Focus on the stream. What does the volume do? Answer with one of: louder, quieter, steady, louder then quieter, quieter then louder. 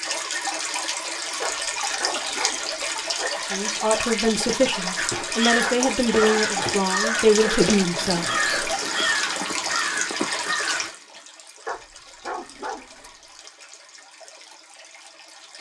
quieter.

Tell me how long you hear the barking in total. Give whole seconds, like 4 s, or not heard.
5 s.